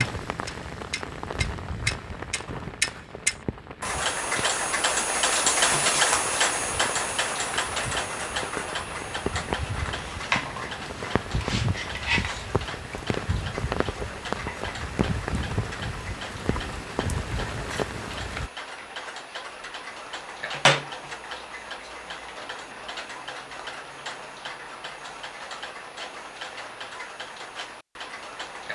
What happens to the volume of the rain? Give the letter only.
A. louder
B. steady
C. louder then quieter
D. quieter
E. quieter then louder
E.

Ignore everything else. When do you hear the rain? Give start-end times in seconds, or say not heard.
0.0-18.5.